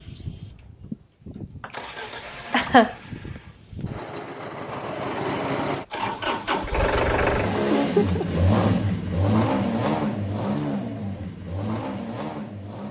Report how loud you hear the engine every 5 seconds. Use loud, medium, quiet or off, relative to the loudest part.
quiet, loud, medium.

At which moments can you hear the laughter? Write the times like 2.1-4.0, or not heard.
0.9-1.7, 2.5-3.0, 7.7-8.4.